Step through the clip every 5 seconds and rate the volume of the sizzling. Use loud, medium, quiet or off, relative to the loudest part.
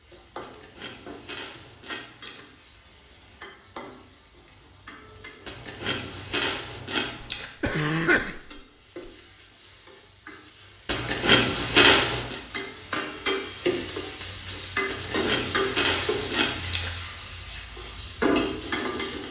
quiet, quiet, loud, loud.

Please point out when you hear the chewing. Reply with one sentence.
You can hear the chewing from 0.4 to 2.5 s, from 5.5 to 7.5 s, from 10.8 to 12.4 s and from 14.8 to 16.9 s.